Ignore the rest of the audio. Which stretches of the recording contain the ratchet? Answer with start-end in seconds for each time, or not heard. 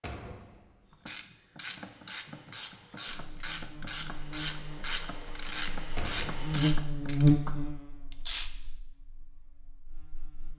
0.9-8.5.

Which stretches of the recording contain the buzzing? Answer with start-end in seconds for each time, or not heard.
3.1-10.5.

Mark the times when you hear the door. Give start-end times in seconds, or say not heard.
0.0-1.1, 6.0-6.5.